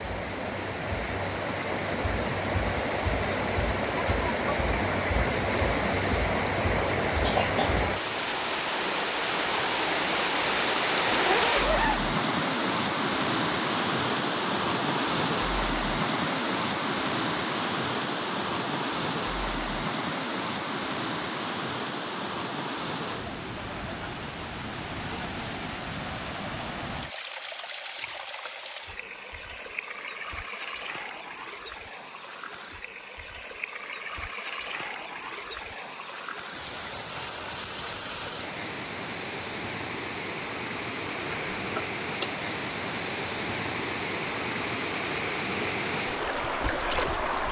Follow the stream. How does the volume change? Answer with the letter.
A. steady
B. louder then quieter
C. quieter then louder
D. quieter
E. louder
C.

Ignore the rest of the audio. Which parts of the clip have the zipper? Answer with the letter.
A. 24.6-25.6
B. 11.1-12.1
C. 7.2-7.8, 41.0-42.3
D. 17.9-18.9
B.